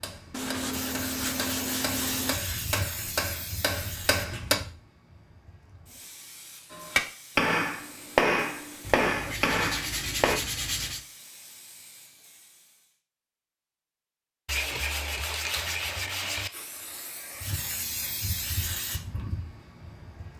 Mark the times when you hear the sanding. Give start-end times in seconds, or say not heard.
0.3-2.4, 8.8-11.1, 14.4-16.5.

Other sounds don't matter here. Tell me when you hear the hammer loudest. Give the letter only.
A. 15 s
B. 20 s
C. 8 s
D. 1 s
C.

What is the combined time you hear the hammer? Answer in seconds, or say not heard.
8 s.